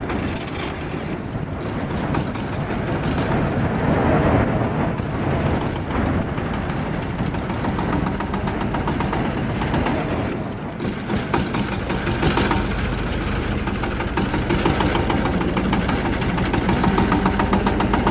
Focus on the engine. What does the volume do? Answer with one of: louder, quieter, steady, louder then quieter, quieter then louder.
louder.